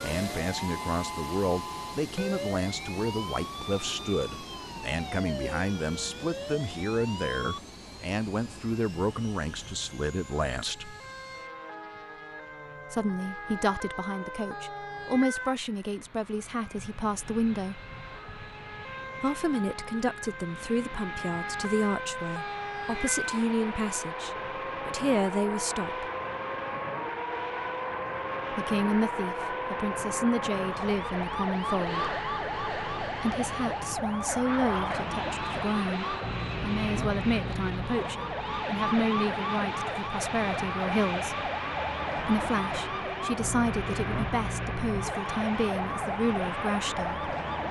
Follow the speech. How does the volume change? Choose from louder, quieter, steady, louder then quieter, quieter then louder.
steady.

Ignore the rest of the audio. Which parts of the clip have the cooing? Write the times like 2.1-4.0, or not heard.
not heard.